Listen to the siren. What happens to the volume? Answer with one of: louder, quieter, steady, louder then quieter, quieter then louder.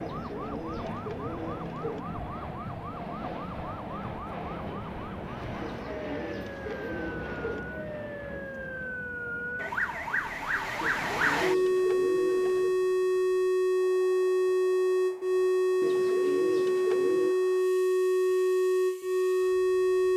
louder.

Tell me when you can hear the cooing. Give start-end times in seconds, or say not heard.
0.0-2.0, 5.6-7.6, 10.8-12.8, 15.8-17.4.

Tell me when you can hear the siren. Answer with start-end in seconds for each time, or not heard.
0.1-20.1.